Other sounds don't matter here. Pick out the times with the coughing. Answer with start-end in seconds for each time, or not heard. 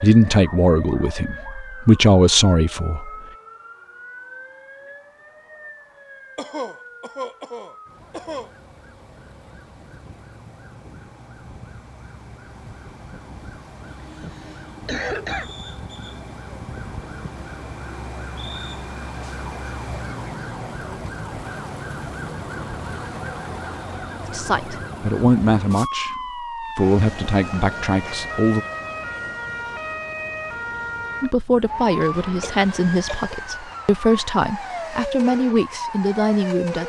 6.3-8.5, 14.2-15.6, 32.0-33.4.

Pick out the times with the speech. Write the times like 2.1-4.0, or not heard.
0.0-3.1, 24.3-28.6, 31.2-36.8.